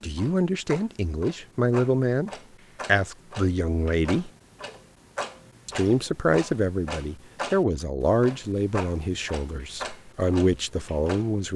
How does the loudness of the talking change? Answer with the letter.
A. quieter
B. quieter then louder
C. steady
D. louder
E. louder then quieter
C.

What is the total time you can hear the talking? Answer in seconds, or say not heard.
10 s.